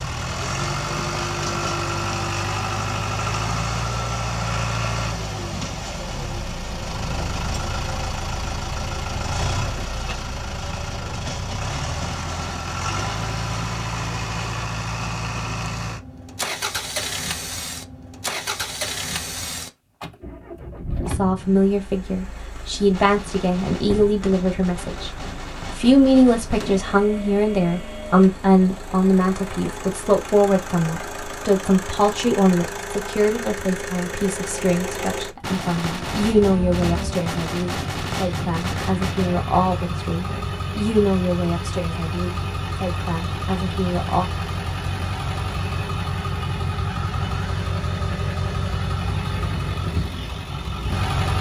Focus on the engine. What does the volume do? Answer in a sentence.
The loudness of the engine goes down, then up.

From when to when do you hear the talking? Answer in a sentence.
The talking can be heard from 21.1 to 44.3 s.